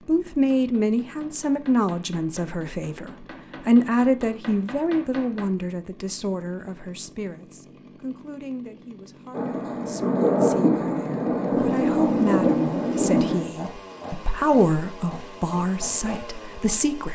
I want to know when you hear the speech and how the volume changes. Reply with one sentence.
You can hear the speech from 0.1 to 17.1 s, getting quieter then louder.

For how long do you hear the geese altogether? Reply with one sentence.
You can't hear the geese here.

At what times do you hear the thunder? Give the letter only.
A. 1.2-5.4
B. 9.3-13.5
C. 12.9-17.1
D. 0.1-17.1
B.